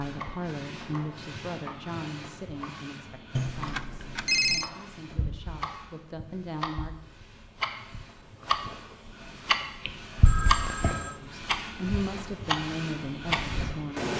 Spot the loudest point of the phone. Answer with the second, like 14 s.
4 s.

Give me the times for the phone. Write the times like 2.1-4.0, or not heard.
3.4-4.7, 10.2-11.2.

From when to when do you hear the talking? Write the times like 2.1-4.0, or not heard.
0.0-7.0, 11.2-14.1.